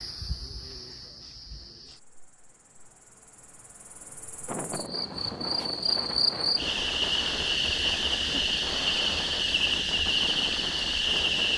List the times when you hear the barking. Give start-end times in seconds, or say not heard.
not heard.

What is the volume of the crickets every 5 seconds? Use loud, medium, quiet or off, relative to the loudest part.
quiet, loud, loud.